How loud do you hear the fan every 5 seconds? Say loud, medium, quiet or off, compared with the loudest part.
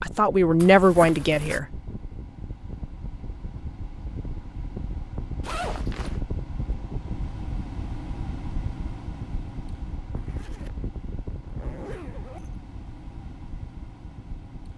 medium, loud, medium.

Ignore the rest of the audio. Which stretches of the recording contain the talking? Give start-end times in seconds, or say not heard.
0.0-1.8.